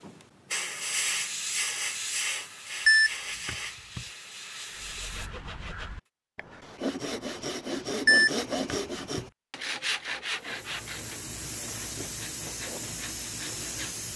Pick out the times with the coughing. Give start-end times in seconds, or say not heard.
not heard.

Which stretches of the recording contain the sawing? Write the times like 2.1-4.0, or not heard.
4.7-14.1.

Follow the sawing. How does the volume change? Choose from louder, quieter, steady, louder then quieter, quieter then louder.
louder then quieter.